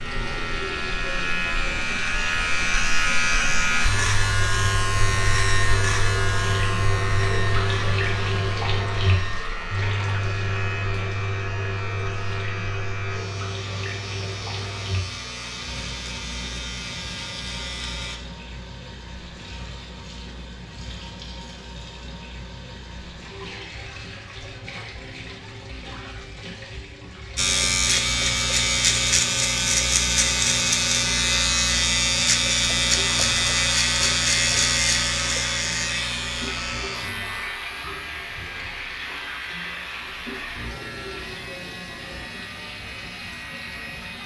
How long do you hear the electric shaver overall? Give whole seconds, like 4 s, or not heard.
35 s.